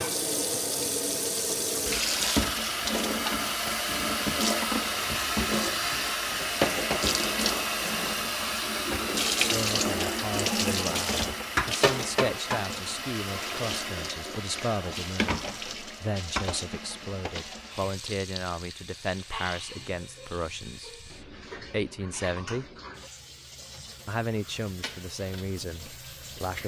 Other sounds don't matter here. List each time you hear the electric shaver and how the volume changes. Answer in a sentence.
You can't hear the electric shaver here.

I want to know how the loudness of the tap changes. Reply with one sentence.
The loudness of the tap goes down.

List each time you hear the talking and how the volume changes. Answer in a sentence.
You can hear the talking from 9.4 to 22.6 s, at a steady volume; and briefly from 24.1 to 26.6 s.